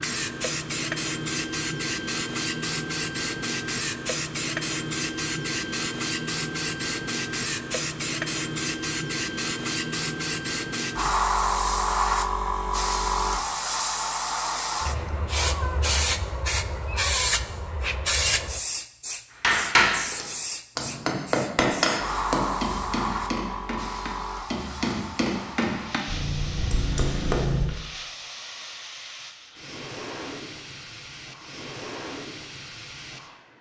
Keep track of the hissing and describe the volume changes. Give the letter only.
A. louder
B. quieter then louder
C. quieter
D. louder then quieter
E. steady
C.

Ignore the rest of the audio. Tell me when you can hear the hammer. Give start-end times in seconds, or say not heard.
19.4-27.8.